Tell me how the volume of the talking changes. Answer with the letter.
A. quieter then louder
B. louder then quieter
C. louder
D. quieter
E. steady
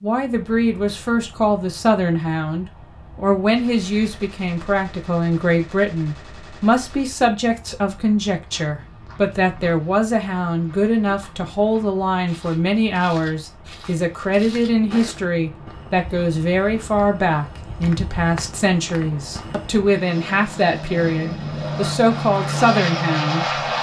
E.